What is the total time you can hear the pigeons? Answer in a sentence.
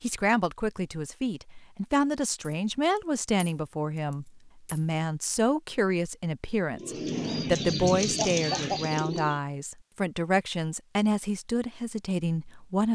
You can hear the pigeons for 3 seconds altogether.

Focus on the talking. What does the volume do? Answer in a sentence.
The loudness of the talking stays about the same.